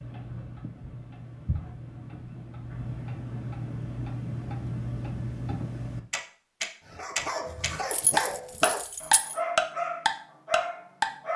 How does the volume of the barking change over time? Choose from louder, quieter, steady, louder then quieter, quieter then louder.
steady.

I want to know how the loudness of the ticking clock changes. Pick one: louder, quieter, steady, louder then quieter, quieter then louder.
louder.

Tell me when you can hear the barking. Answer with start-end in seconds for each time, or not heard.
6.8-11.3.